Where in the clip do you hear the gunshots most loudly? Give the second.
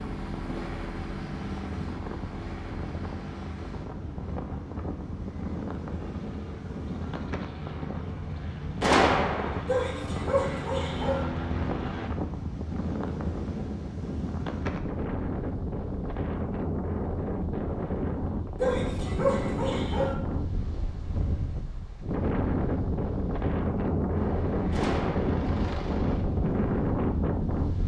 9 s.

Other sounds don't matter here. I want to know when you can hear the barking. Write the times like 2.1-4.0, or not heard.
9.7-11.2, 18.6-20.1.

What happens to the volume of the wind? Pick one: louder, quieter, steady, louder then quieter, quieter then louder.
louder.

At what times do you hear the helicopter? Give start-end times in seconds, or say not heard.
0.0-12.1, 24.1-26.2.